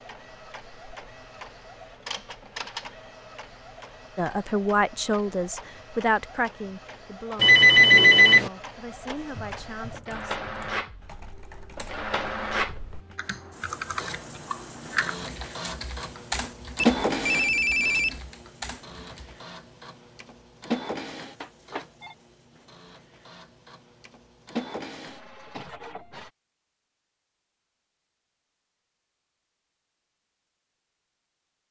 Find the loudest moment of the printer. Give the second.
17 s.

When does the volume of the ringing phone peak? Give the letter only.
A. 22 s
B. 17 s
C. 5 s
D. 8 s
D.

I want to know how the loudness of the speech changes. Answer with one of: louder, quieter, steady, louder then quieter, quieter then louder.
quieter.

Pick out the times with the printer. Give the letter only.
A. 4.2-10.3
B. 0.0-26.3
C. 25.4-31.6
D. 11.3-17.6
B.